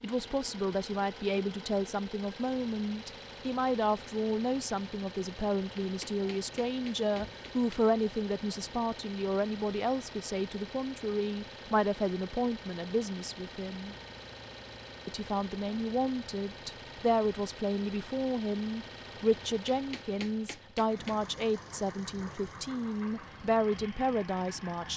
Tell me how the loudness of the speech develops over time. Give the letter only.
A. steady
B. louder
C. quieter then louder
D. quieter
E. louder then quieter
A.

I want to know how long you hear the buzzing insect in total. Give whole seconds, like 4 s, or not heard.
not heard.